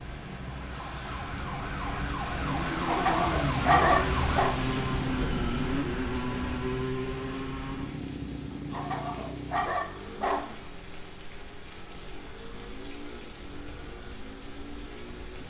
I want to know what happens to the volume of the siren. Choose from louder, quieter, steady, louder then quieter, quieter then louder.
louder.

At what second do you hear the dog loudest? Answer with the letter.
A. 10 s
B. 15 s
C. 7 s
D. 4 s
D.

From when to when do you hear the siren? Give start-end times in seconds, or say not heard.
0.0-4.4.